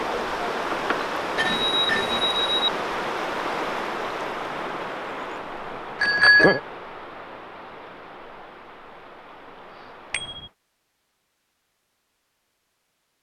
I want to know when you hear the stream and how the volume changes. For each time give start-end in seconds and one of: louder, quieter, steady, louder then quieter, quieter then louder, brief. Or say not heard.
0.0-10.6 quieter.